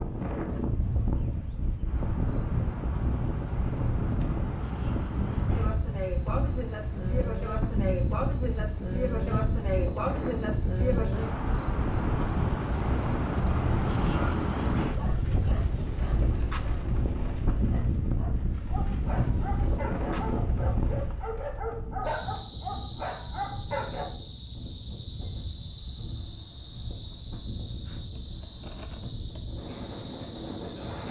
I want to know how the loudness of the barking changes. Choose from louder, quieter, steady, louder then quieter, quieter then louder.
louder.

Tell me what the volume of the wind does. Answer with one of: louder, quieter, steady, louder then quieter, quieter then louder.
quieter.